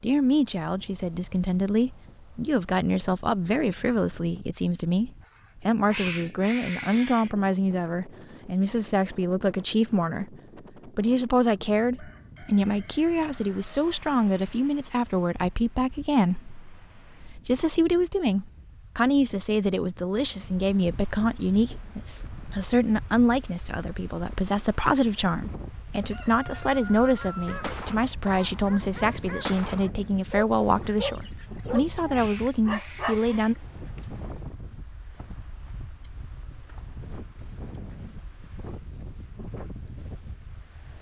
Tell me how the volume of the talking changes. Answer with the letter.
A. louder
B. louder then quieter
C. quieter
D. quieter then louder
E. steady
E.